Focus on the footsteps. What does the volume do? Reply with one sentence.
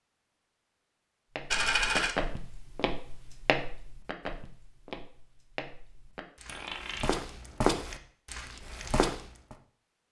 The loudness of the footsteps goes down, then up.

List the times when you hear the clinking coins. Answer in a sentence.
You can hear the clinking coins from 1.5 to 2.1 s and from 6.5 to 7.2 s.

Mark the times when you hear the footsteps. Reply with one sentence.
The footsteps can be heard from 1.4 to 9.6 s.